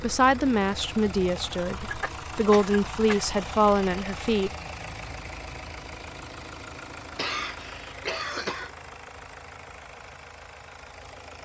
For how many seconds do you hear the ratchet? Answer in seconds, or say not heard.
not heard.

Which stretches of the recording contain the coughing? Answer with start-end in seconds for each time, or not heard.
1.8-3.4, 7.2-8.7.